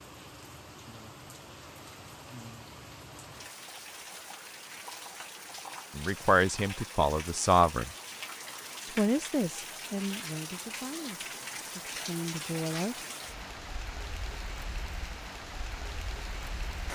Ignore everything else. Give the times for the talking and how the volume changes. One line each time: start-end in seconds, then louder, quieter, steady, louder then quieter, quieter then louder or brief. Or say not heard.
6.0-7.9 brief
8.9-12.9 quieter then louder.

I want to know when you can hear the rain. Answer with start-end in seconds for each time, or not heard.
0.0-16.9.